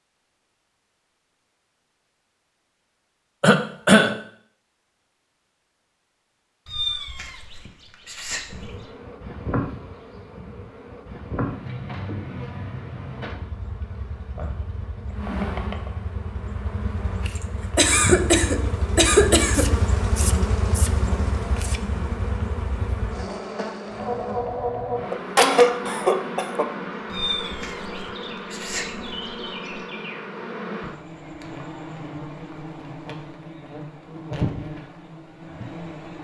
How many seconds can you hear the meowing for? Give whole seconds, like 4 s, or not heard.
5 s.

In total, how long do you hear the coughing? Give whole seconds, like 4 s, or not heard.
4 s.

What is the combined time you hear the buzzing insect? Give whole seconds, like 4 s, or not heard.
28 s.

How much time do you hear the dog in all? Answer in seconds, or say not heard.
not heard.